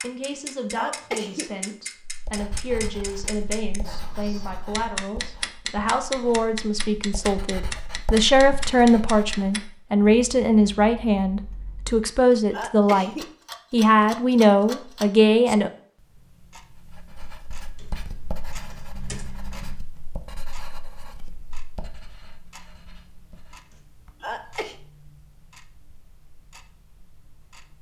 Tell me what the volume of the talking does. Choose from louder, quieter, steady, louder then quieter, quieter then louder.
louder.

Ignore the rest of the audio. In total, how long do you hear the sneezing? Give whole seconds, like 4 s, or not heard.
2 s.